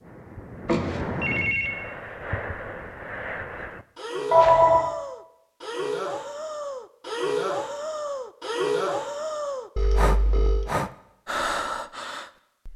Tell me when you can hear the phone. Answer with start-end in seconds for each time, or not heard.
0.7-1.7, 4.3-4.9, 9.8-10.7.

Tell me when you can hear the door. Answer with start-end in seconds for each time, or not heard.
not heard.